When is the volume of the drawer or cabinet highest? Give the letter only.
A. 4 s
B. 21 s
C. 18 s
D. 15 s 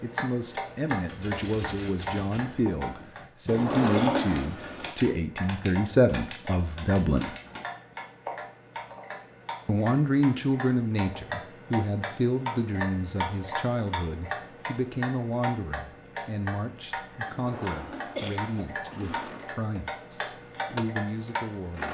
A.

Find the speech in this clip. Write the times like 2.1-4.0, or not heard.
0.0-7.3, 9.7-21.8.